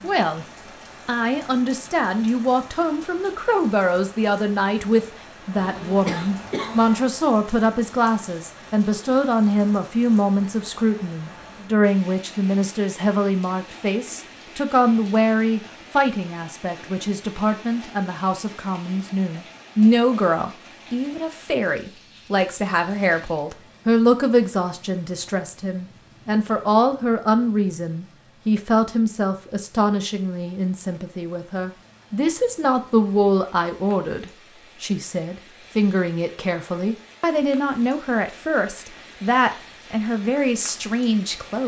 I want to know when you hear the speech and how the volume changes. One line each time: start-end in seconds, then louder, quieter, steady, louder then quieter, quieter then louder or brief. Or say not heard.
0.0-0.5 brief
1.1-41.6 steady.